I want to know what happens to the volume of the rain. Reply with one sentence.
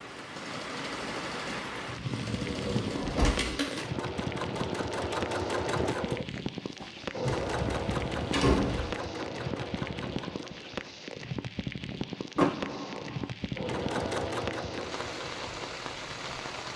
The loudness of the rain stays about the same.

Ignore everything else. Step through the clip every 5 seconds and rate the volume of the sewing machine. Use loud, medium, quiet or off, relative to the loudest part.
loud, loud, loud, medium.